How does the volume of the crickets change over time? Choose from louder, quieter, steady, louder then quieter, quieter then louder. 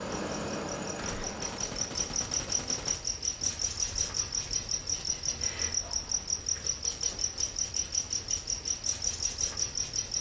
steady.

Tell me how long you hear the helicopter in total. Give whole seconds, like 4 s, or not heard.
3 s.